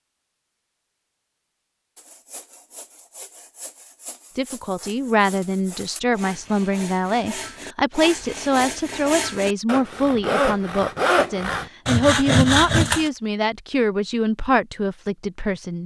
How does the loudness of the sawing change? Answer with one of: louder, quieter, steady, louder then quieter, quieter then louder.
louder.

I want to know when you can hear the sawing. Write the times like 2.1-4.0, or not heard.
1.9-13.1.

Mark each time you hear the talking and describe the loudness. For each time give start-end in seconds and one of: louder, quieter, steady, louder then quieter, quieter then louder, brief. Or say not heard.
4.3-15.8 steady.